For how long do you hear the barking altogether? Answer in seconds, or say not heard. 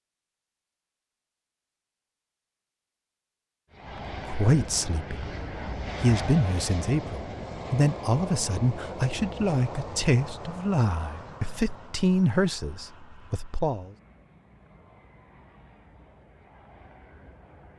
not heard.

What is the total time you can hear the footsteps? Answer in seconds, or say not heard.
not heard.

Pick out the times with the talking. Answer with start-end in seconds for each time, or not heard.
4.2-5.2, 6.0-13.9.